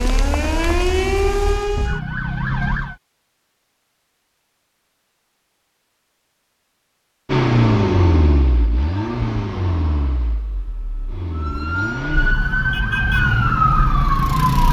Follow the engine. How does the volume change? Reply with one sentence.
The loudness of the engine goes down, then up.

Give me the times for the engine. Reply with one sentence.
You can hear the engine from 7.2 to 12.3 s.